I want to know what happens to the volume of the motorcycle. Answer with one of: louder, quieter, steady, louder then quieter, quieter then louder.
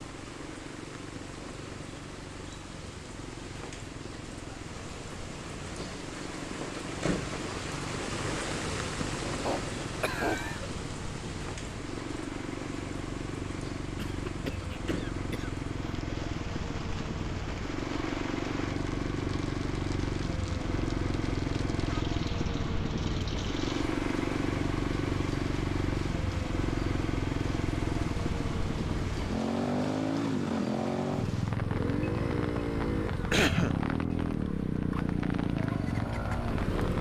louder.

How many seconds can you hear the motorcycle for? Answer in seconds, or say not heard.
37 s.